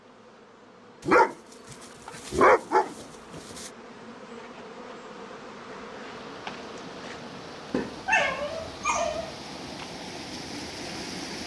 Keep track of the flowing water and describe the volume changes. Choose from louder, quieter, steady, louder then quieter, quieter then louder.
louder.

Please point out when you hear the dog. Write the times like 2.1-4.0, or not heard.
1.1-3.7, 7.7-9.3.